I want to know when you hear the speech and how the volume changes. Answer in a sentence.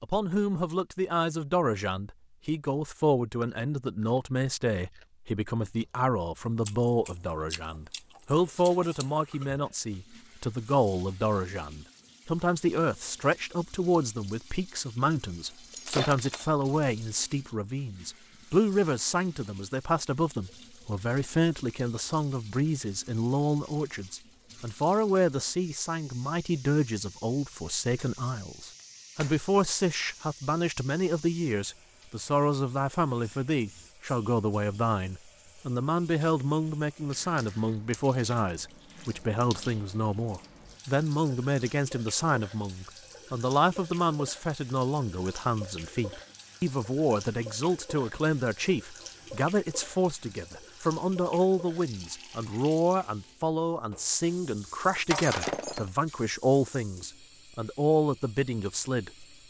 You can hear the speech from 0.0 to 59.2 s, at a steady volume.